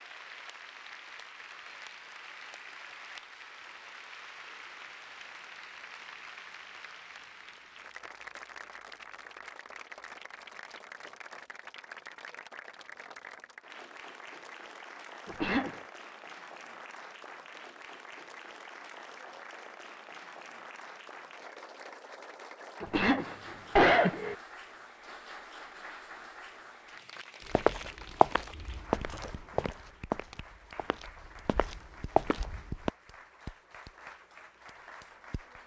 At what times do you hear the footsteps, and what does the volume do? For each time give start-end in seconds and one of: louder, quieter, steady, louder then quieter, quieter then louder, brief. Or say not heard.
27.5-32.9 quieter then louder.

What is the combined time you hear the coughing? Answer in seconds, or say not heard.
2 s.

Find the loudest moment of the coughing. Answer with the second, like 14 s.
24 s.